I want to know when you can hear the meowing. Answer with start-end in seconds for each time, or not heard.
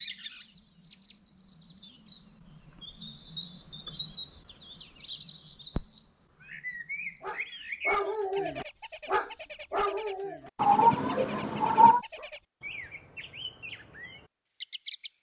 10.6-12.0.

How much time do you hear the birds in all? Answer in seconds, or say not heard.
15 s.